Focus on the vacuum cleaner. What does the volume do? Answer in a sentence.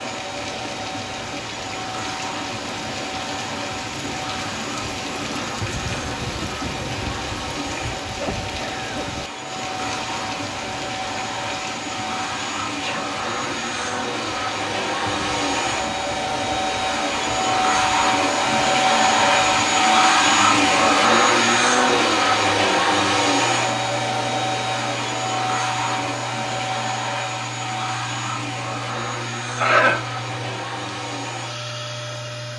The volume of the vacuum cleaner goes up, then down.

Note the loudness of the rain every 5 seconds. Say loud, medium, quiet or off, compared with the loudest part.
loud, loud, loud, medium, medium, medium, medium.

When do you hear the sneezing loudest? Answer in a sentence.
The volume of the sneezing peaks at 30 seconds.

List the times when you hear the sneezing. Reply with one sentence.
You can hear the sneezing from 8.2 to 9.1 s, from 12.7 to 13.1 s and from 29.6 to 30.1 s.